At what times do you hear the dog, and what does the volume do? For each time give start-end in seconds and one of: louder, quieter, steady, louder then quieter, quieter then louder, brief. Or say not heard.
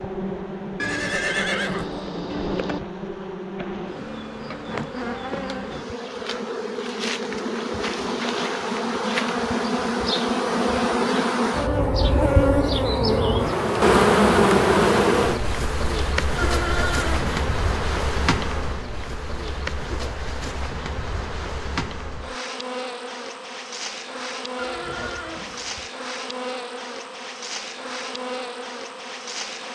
not heard.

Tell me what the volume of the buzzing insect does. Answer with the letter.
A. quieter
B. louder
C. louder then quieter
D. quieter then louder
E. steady
C.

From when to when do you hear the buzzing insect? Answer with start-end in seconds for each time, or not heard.
0.0-29.7.